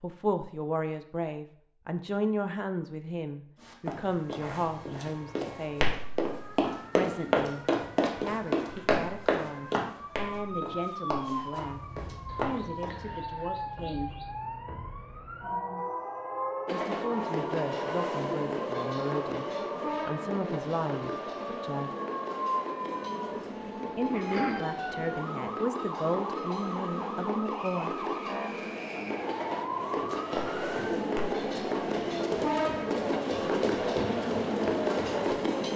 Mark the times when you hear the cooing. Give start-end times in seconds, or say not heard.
12.2-14.3, 22.9-24.6.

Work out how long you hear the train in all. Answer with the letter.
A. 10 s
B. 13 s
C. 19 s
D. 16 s
C.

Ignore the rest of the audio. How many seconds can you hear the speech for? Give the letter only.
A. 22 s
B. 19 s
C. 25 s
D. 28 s
A.